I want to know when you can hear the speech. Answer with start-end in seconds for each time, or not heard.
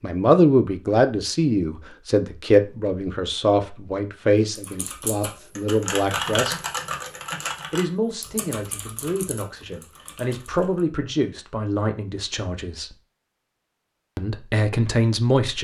0.0-6.6, 7.7-12.9, 14.2-15.6.